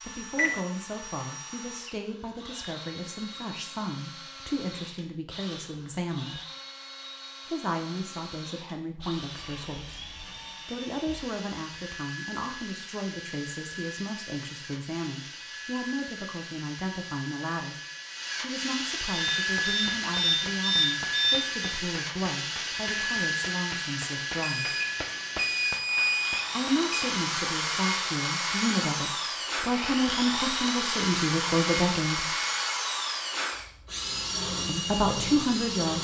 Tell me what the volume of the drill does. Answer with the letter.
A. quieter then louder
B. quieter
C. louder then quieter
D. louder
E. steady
D.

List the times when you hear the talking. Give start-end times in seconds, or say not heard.
0.0-6.4, 7.5-17.8, 18.4-24.8, 26.5-32.3, 34.6-35.9.